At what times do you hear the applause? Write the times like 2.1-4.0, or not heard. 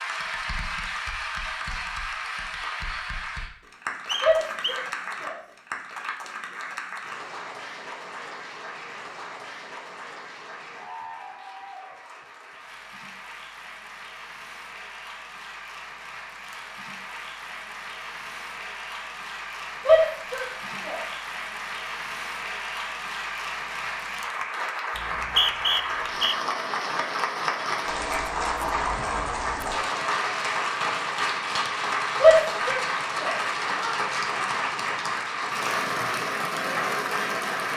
0.0-37.7.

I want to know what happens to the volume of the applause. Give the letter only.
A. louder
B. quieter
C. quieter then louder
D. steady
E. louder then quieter
C.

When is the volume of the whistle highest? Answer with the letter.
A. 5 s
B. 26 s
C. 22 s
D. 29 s
B.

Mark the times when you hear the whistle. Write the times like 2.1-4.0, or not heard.
4.0-4.8, 24.9-26.4.